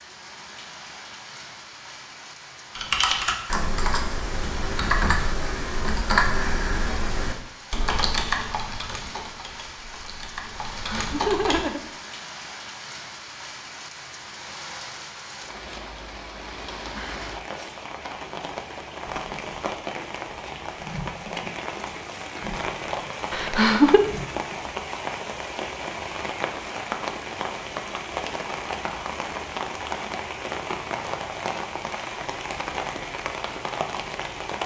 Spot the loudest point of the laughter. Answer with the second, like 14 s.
24 s.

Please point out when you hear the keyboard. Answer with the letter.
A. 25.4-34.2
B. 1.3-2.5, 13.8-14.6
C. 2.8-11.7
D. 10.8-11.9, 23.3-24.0
C.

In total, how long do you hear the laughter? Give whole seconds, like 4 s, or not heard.
2 s.